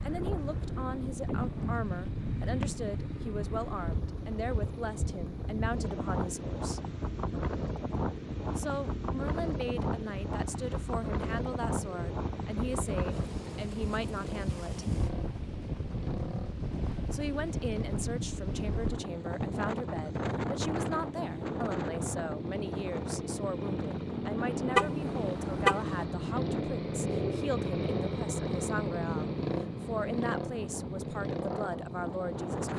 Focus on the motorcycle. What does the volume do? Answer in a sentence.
The loudness of the motorcycle goes up.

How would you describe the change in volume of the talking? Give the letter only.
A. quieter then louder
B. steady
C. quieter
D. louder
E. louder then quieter
B.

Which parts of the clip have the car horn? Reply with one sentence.
The car horn can be heard from 24.8 to 25.9 s.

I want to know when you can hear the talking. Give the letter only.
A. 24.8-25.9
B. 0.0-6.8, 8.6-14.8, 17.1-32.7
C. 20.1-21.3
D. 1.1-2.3
B.